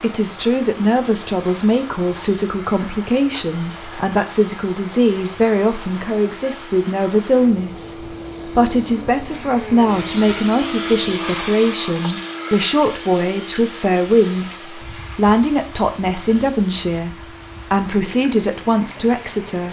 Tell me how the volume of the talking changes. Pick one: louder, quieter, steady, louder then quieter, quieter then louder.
steady.